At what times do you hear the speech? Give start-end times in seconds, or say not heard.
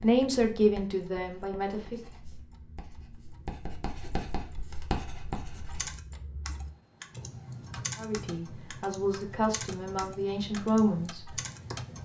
0.0-2.0, 8.0-11.3.